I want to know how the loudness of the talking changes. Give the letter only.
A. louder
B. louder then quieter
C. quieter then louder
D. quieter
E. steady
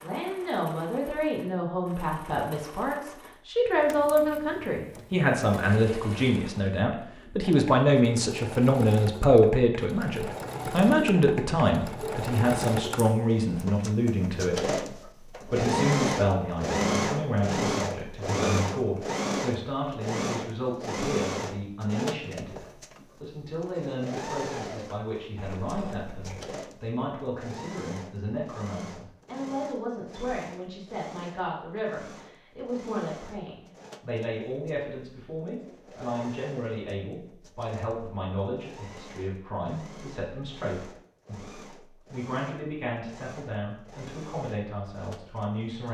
D.